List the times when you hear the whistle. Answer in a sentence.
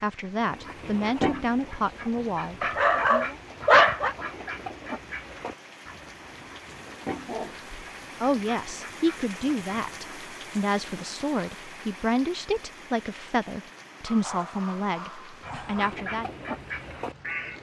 The whistle can't be heard in this clip.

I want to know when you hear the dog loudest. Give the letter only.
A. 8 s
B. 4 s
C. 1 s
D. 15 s
B.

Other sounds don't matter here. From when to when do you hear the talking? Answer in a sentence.
You can hear the talking from 0.0 to 3.4 s and from 8.2 to 16.3 s.